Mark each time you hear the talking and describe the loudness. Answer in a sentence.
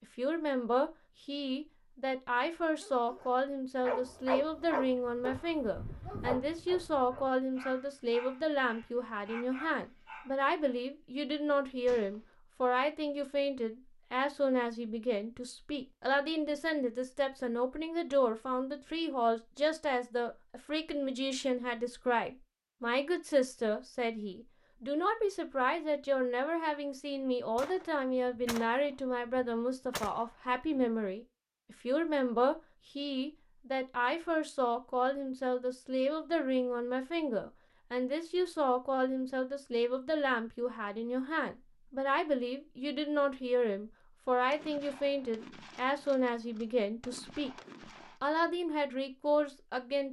The talking can be heard from 0.0 to 47.5 s, at a steady volume; and briefly from 48.2 to 50.0 s.